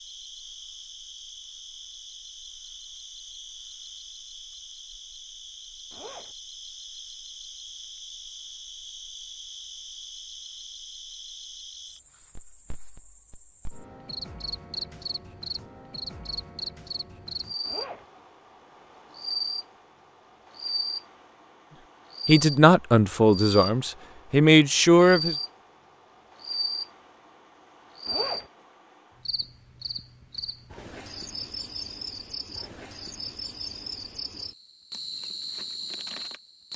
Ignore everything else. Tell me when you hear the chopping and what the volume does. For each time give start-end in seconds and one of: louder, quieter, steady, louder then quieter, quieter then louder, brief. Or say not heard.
not heard.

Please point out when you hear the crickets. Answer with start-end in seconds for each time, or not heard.
0.0-36.7.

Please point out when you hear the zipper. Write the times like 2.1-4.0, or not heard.
5.9-6.3, 17.6-18.1, 28.1-28.5.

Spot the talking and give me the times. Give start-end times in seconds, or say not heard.
22.2-25.4.